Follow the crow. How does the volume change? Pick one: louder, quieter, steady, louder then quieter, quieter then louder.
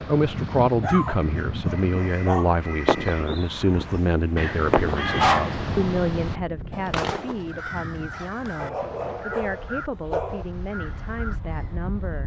louder then quieter.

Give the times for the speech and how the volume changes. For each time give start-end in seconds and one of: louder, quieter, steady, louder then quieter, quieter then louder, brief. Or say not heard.
0.1-12.2 quieter.